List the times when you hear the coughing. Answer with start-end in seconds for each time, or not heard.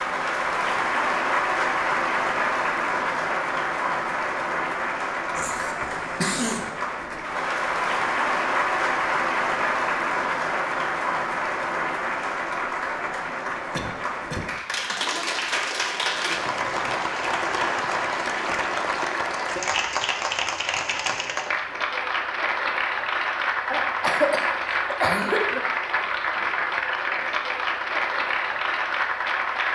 5.3-6.7, 13.7-14.5, 23.7-25.6.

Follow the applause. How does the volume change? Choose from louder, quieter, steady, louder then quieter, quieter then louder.
steady.